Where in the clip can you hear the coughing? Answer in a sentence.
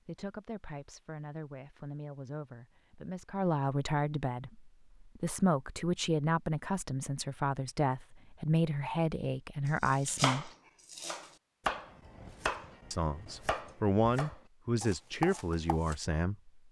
The coughing can't be heard in this clip.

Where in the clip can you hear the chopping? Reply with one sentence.
The chopping can be heard from 9.8 to 15.9 s.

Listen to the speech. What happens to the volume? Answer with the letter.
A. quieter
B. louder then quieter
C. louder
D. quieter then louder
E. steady
C.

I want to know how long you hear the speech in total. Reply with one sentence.
You can hear the speech for 14 seconds altogether.